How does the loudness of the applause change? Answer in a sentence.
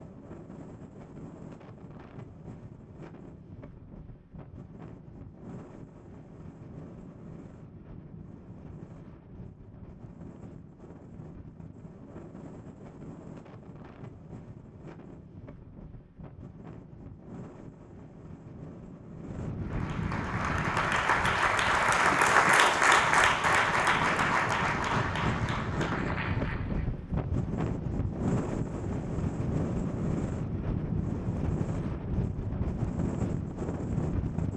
The volume of the applause goes up, then down.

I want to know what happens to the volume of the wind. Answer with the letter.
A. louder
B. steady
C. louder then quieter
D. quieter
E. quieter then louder
A.